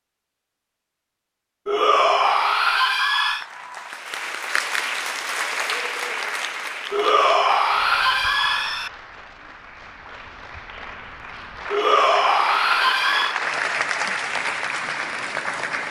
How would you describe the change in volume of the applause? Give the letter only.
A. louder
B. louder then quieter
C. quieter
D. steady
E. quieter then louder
E.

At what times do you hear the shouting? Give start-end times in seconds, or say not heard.
1.6-3.5, 6.9-8.9, 11.7-13.4.